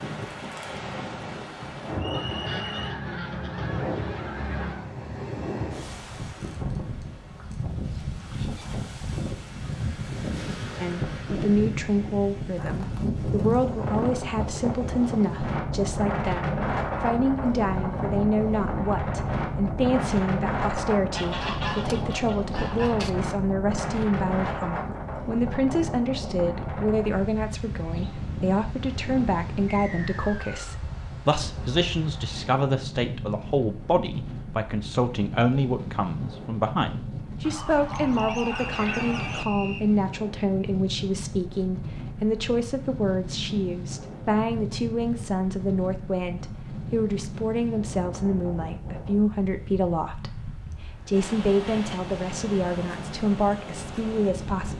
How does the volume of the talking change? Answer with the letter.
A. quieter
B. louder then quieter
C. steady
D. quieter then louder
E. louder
C.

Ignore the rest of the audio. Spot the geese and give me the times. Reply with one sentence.
The geese can be heard from 2.1 to 5.0 s, from 21.1 to 23.1 s and from 37.4 to 39.5 s.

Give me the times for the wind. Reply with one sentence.
The wind can be heard from 0.0 to 54.7 s.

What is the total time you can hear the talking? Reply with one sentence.
You can hear the talking for 43 seconds altogether.